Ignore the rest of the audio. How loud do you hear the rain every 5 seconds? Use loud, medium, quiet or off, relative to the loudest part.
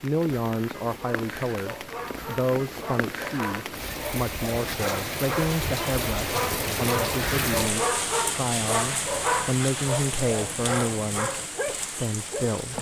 medium, loud, medium.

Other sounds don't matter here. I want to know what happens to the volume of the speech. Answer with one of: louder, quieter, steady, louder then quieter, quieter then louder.
steady.